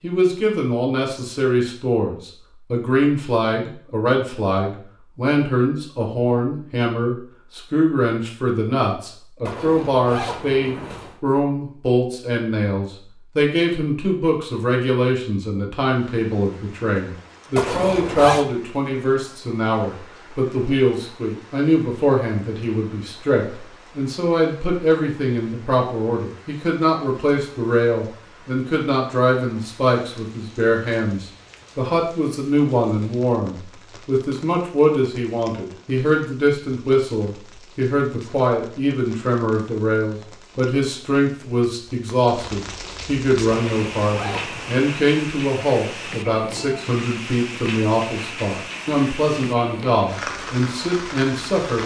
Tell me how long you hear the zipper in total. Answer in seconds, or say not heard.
4 s.